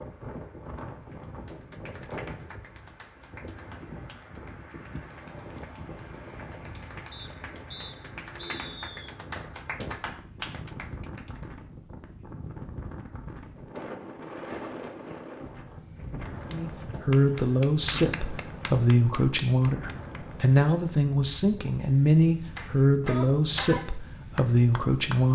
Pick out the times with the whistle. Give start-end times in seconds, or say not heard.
7.1-9.1.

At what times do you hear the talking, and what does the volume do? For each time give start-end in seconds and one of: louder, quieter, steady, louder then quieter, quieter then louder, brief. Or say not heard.
16.5-25.3 steady.